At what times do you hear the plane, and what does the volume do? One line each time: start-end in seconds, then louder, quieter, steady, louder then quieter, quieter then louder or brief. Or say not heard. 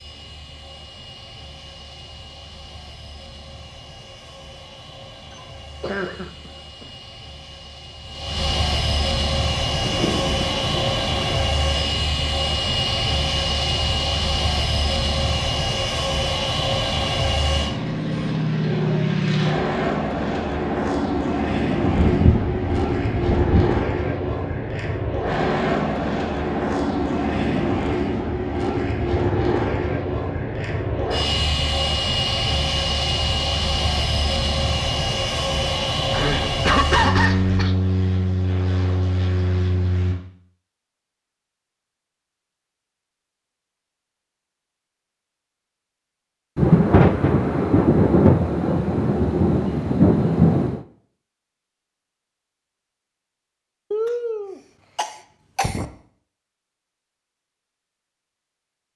0.0-40.1 louder.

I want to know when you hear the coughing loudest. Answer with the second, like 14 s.
37 s.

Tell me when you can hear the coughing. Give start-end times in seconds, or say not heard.
5.3-6.8, 36.1-37.8, 53.9-55.9.